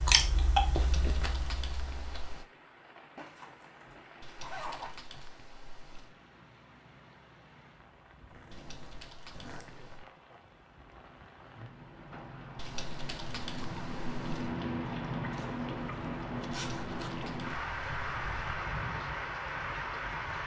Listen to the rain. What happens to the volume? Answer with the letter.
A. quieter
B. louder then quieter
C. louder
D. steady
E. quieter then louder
C.